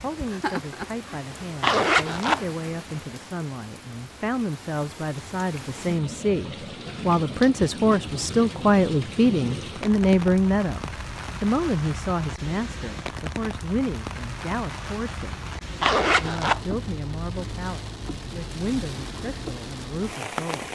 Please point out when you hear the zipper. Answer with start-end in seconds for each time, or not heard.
1.6-2.4, 15.8-16.6.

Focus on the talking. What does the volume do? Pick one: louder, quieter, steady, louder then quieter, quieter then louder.
louder then quieter.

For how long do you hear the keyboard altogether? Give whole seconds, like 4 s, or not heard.
not heard.